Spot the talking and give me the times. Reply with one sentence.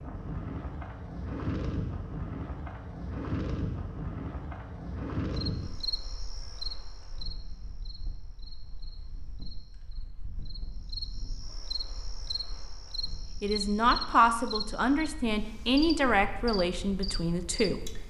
The talking can be heard from 13.4 to 17.8 s.